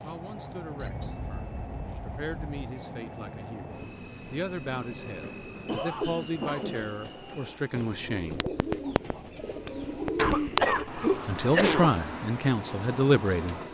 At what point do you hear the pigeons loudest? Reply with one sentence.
The volume of the pigeons peaks at 10 seconds.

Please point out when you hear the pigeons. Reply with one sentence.
You can hear the pigeons from 7.8 to 13.6 s.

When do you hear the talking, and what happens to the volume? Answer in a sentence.
The talking can be heard from 0.0 to 8.4 s, getting louder; and briefly from 10.9 to 13.6 s.